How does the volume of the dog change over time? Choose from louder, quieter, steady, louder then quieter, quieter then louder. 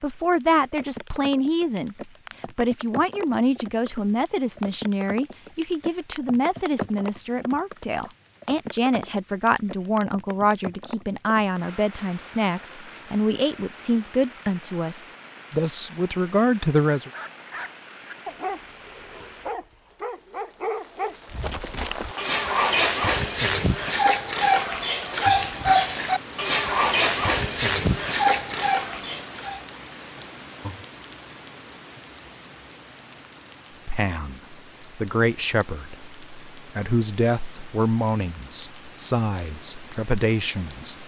louder.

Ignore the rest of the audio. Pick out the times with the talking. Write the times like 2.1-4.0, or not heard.
0.0-17.1, 33.9-41.0.